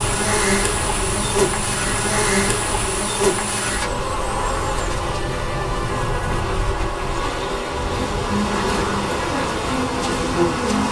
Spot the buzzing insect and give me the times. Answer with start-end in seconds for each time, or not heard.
0.0-10.8.